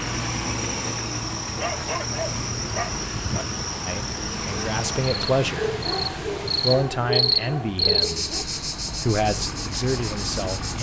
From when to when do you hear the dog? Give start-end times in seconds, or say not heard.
1.6-3.5, 5.5-8.4.